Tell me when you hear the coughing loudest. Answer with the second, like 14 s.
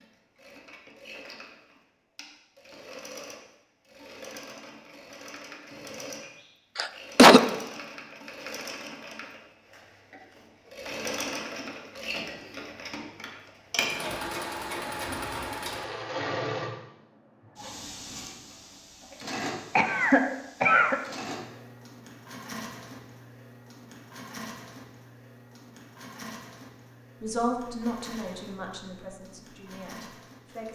7 s.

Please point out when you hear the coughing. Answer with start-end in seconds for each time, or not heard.
6.8-7.4, 19.3-21.0.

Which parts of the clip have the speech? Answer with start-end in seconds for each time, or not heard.
27.2-30.7.